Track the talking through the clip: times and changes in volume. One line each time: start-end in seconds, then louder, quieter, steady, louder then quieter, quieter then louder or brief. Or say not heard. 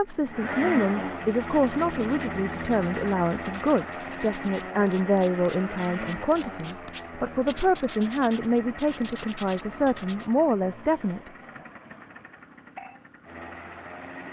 0.0-11.3 steady.